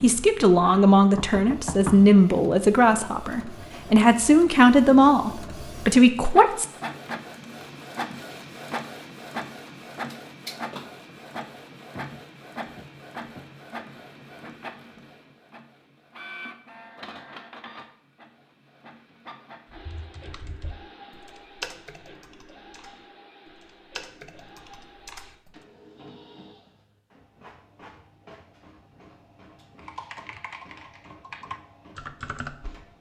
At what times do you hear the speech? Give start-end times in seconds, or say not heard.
0.0-6.7.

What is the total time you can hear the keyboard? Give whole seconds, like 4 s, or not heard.
9 s.